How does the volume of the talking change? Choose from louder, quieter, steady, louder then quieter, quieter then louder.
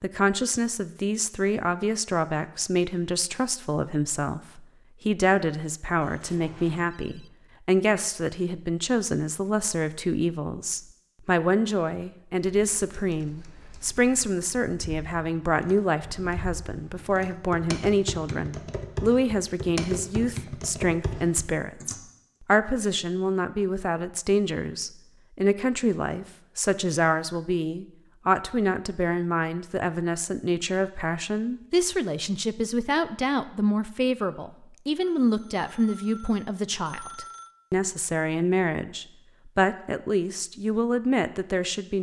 steady.